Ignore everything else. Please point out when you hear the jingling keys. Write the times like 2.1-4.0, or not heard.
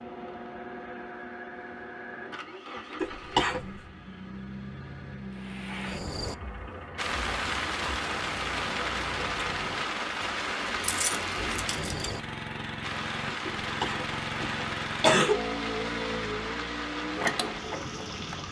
10.8-12.2.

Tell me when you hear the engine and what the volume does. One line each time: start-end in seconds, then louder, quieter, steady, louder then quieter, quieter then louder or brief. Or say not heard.
0.0-18.4 louder.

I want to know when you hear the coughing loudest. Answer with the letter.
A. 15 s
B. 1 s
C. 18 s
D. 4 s
A.